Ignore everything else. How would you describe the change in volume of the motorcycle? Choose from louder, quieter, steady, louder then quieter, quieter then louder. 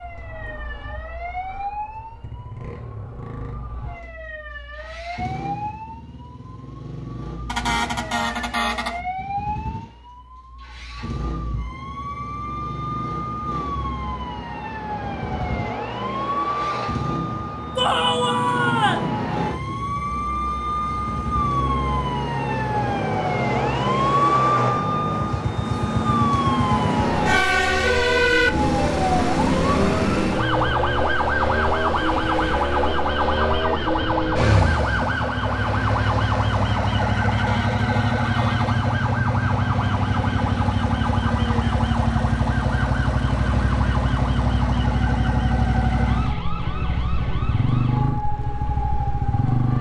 louder.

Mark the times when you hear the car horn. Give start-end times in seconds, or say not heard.
7.5-9.0, 37.3-38.9.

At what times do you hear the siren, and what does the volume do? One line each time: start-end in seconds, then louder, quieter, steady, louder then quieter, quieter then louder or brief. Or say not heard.
0.0-49.7 louder then quieter.